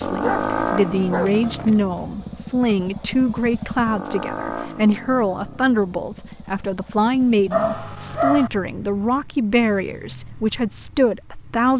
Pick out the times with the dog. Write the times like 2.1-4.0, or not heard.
0.2-1.8, 7.5-8.5.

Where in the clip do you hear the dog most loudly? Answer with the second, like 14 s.
8 s.